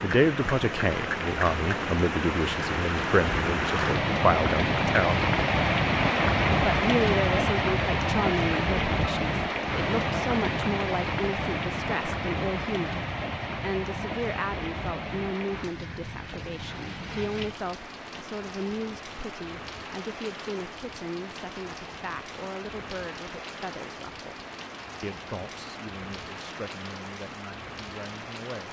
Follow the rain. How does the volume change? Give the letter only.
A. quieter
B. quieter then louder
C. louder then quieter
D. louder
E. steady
A.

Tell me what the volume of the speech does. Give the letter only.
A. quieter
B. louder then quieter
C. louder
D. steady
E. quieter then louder
A.